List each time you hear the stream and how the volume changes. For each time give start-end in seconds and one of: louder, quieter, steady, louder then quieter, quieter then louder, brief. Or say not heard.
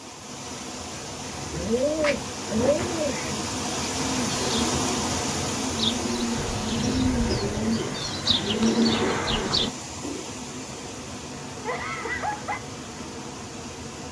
0.0-14.0 louder then quieter.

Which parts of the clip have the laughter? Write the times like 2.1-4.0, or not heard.
11.7-12.6.